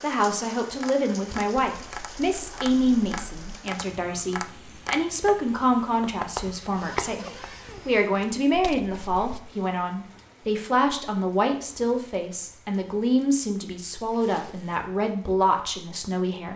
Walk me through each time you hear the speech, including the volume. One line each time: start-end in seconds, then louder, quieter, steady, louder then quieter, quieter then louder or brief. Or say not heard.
0.0-16.5 steady.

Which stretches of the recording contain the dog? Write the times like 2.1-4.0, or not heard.
not heard.